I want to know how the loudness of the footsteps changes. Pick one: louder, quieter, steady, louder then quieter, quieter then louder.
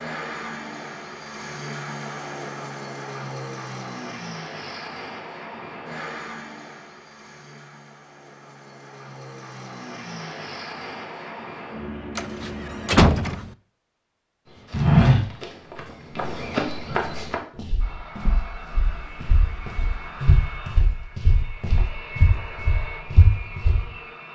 quieter then louder.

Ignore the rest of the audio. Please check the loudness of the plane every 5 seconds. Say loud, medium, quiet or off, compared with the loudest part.
loud, medium, loud, medium, medium.